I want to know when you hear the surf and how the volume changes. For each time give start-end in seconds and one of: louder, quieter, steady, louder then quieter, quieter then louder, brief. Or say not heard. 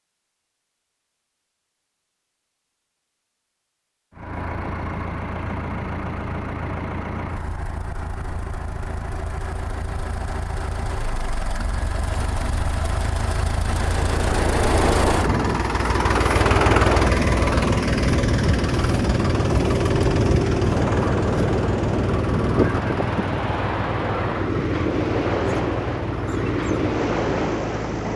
13.7-28.1 steady.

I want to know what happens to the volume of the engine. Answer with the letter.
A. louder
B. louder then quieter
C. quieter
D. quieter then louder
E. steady
B.